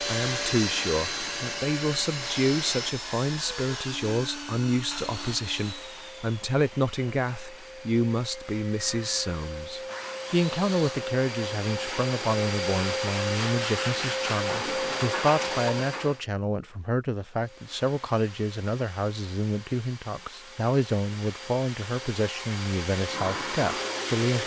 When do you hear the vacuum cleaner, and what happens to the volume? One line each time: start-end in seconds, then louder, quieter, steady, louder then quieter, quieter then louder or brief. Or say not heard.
0.0-16.2 quieter then louder
17.2-24.4 louder.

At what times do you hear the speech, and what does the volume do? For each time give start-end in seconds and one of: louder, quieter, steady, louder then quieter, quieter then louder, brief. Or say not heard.
0.0-24.4 steady.